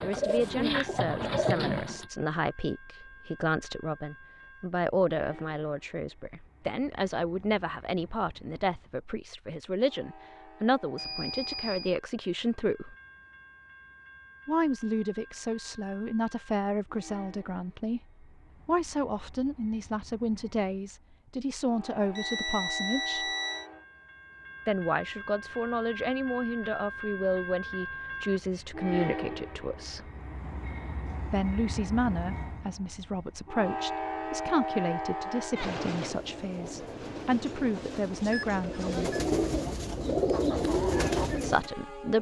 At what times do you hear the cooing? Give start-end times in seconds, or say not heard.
0.0-2.0, 36.0-41.7.